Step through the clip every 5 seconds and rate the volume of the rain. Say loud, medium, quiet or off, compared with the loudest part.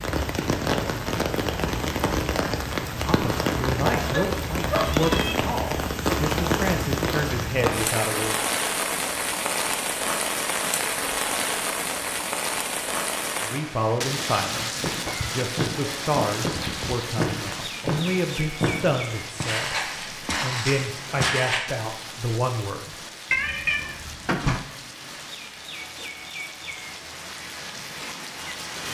loud, loud, loud, medium, quiet, medium.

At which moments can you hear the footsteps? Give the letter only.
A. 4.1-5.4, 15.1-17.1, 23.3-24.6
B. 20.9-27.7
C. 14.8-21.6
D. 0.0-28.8
C.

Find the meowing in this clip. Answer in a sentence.
You can hear the meowing from 4.1 to 5.4 s, from 15.1 to 17.1 s and from 23.3 to 24.6 s.